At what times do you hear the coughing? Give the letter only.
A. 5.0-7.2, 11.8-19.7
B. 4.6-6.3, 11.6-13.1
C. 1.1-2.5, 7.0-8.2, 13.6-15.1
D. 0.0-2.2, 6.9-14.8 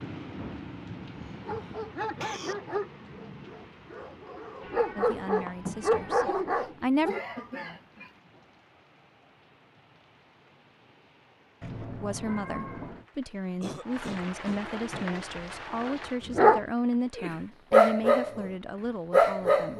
C.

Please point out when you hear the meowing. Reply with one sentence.
You can hear the meowing from 4.6 to 6.3 s and from 11.6 to 13.1 s.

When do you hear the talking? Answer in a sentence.
The talking can be heard from 5.0 to 7.2 s and from 11.8 to 19.7 s.